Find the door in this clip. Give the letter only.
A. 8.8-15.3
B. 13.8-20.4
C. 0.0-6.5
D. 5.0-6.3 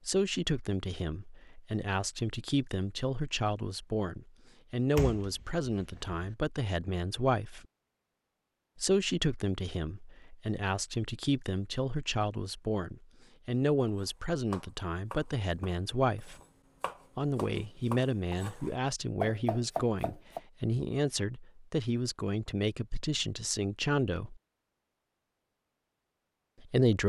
D.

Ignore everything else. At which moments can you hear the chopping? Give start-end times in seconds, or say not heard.
13.8-20.4.